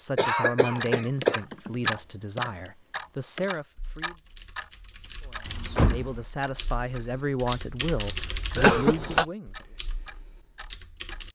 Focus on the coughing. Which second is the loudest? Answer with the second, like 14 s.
9 s.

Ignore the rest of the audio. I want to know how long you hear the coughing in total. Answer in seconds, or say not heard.
2 s.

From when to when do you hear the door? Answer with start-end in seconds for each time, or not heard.
5.5-6.2.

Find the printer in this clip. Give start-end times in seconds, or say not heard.
not heard.